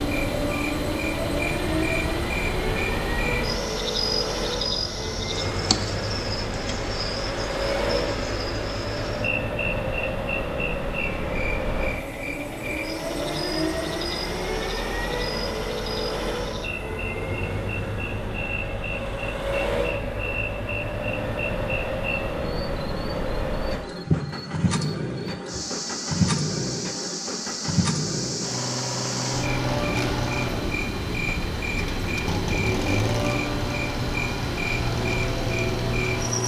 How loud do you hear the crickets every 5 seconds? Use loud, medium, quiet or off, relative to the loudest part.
loud, loud, medium, medium, loud, loud, loud, loud.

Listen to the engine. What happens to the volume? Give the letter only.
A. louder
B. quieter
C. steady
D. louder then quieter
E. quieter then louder
C.